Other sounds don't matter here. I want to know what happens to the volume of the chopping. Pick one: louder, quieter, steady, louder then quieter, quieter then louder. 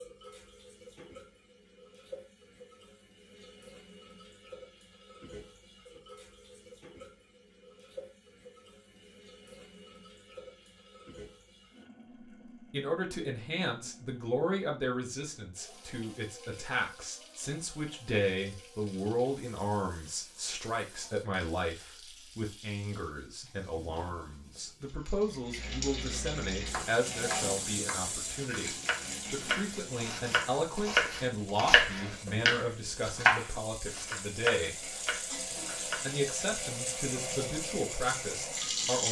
louder then quieter.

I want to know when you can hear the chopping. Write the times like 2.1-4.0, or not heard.
26.7-36.1.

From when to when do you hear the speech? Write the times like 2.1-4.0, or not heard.
12.6-35.0, 35.9-39.0.